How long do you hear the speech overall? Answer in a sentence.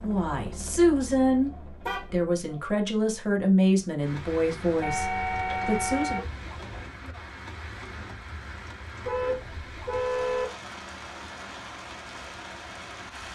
You can hear the speech for 6 seconds altogether.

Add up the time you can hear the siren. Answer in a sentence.
You can't hear the siren here.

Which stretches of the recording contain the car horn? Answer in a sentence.
You can hear the car horn from 1.5 to 2.6 s, from 4.8 to 6.8 s and from 9.1 to 10.4 s.